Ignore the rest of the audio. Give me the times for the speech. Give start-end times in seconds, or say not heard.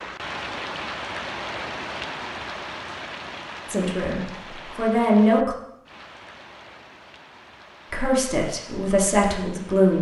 3.6-5.5, 7.9-9.9.